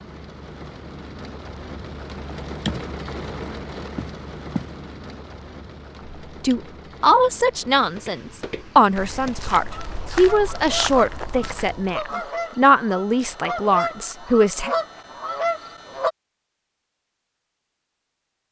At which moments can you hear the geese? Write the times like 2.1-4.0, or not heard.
9.7-16.1.